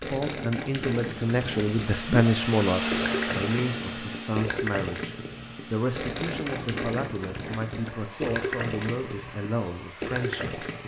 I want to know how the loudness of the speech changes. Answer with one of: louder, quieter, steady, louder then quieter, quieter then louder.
quieter.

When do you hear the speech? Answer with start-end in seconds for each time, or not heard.
0.1-10.7.